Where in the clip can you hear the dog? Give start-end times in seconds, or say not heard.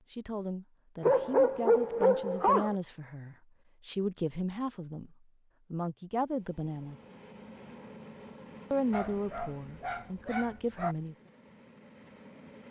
1.0-2.8, 8.9-10.9.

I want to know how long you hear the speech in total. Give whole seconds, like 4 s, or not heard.
9 s.